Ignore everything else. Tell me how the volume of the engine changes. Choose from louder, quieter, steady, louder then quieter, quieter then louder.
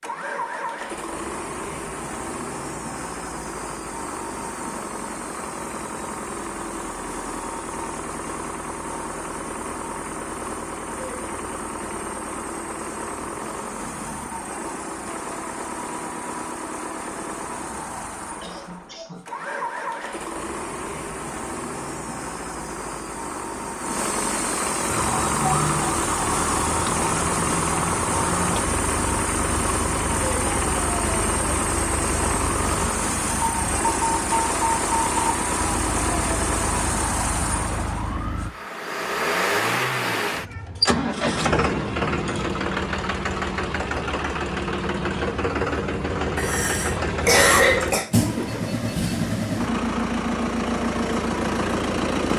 louder.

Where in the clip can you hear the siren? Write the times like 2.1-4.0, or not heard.
24.9-38.5.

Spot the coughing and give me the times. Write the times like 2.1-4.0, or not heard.
18.4-19.2, 46.4-48.0.